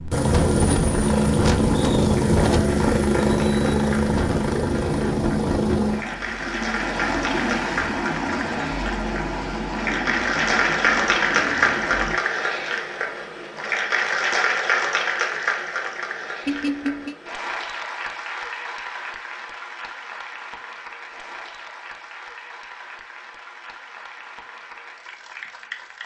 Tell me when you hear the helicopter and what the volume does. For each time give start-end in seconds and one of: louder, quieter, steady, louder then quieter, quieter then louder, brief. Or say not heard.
0.0-12.2 quieter.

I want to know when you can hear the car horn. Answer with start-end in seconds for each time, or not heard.
16.4-17.1.